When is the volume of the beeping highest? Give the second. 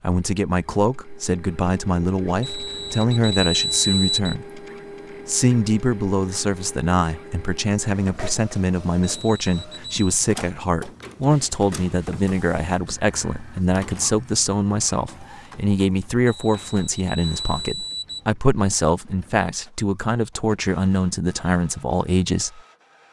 4 s.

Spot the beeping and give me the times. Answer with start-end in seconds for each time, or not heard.
2.4-4.3, 9.0-10.1, 16.2-18.2.